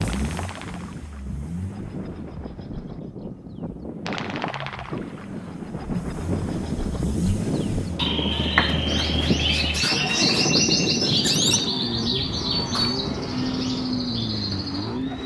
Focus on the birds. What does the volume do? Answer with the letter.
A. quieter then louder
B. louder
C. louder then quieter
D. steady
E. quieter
C.